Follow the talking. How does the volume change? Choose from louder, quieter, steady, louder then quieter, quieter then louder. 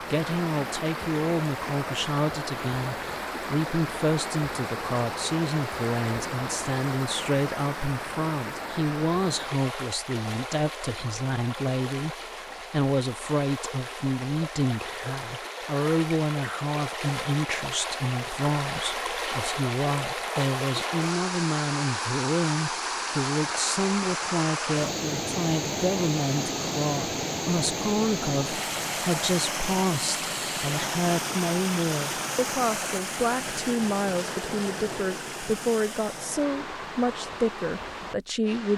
steady.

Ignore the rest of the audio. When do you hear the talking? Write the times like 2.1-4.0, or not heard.
0.0-38.7.